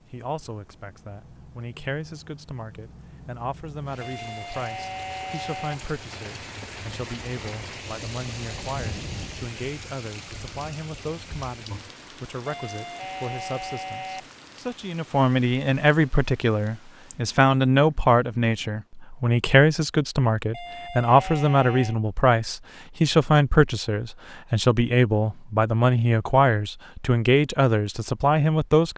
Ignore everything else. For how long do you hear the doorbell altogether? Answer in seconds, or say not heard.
5 s.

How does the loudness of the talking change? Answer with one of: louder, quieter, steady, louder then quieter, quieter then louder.
louder.